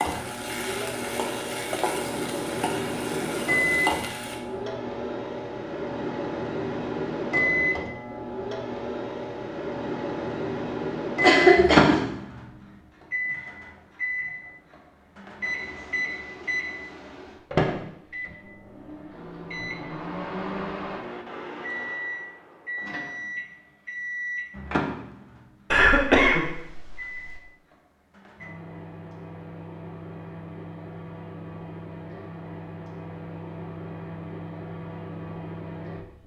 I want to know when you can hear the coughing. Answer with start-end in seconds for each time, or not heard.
11.2-12.1, 25.7-27.3.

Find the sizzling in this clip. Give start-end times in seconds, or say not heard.
0.0-4.4.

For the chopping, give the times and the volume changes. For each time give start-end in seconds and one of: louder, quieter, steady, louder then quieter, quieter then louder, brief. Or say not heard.
not heard.